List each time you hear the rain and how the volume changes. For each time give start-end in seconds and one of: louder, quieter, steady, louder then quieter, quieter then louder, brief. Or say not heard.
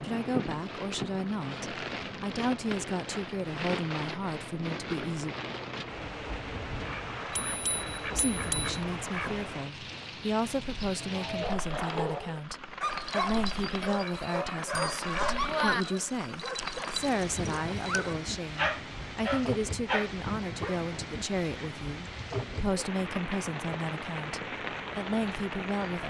0.0-26.0 steady.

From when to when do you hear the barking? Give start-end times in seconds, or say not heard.
11.0-20.8.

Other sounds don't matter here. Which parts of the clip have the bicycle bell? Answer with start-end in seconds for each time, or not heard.
7.3-8.8, 13.8-15.8.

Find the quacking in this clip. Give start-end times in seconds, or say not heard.
6.8-9.5, 13.9-15.4.